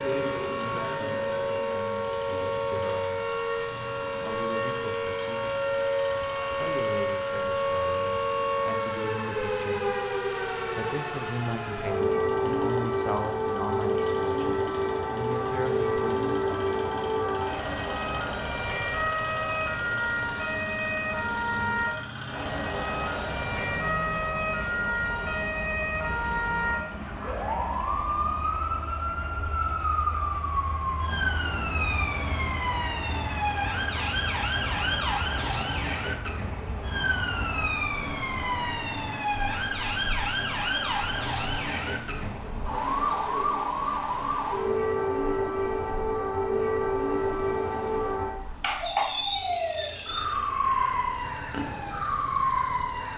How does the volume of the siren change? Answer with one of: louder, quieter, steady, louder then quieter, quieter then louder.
steady.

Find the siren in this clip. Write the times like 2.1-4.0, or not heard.
0.0-53.1.